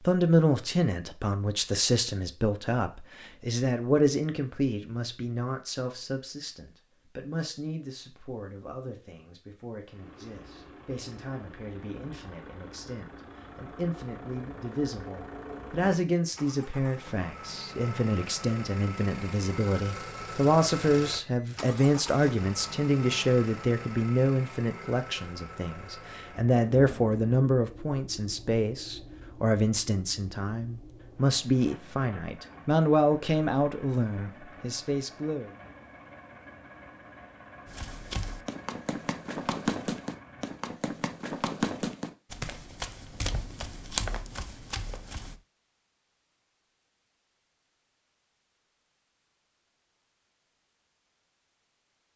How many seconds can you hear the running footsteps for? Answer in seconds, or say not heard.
8 s.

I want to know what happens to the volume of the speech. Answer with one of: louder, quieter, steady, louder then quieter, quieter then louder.
quieter then louder.